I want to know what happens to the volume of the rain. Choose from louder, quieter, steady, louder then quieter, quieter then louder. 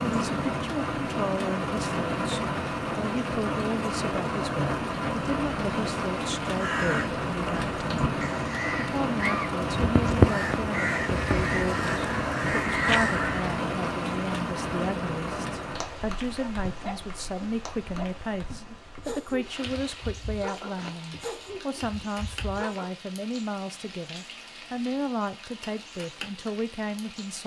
quieter.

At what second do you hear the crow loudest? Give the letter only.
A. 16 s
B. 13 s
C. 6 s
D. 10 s
D.